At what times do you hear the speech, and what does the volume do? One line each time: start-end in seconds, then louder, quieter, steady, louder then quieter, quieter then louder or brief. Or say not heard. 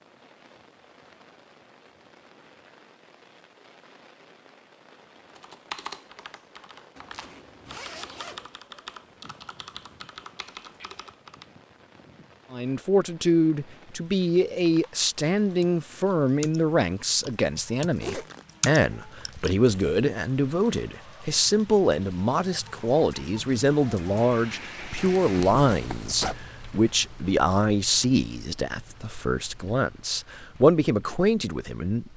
12.5-32.1 steady.